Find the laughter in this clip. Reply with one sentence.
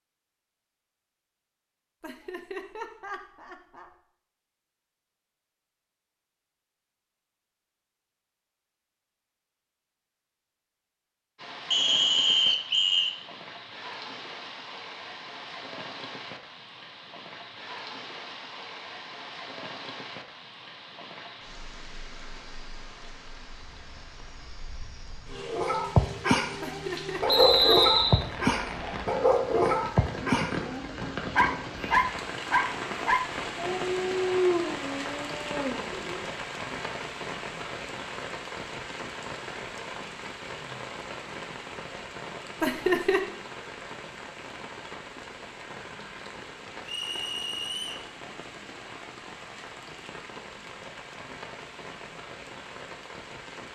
The laughter can be heard from 2.0 to 3.9 s, from 26.6 to 27.8 s and from 42.6 to 43.2 s.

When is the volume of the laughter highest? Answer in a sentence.
The volume of the laughter peaks at 43 seconds.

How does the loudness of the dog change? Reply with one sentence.
The volume of the dog goes down.